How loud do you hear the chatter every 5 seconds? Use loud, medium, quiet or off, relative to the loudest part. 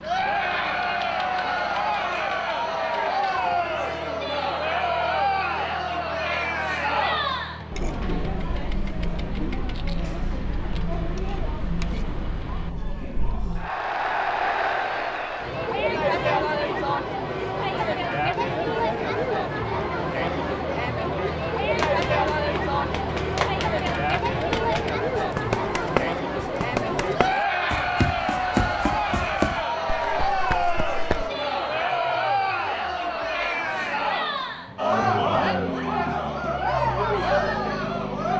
loud, loud, medium, loud, loud, loud, loud, loud.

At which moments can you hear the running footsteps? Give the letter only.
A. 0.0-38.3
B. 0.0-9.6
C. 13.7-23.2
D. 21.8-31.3
D.